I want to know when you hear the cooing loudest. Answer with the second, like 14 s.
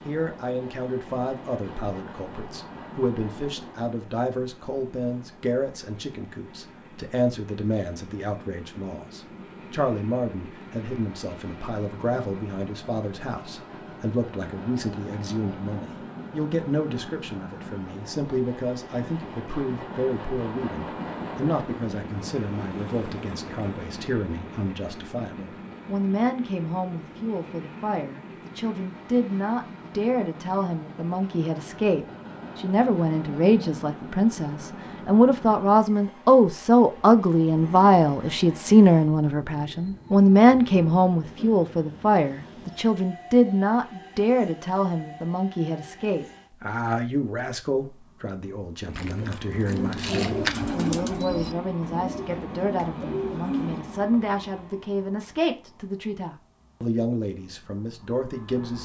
50 s.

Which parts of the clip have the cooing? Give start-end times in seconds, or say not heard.
48.9-54.2.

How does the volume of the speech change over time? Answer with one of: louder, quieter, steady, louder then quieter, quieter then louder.
louder then quieter.